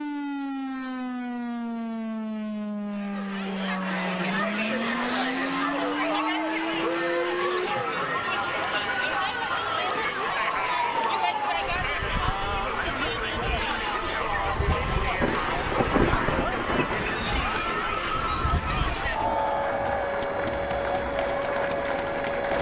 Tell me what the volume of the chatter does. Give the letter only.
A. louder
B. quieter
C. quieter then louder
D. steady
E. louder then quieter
D.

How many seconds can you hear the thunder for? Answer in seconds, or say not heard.
4 s.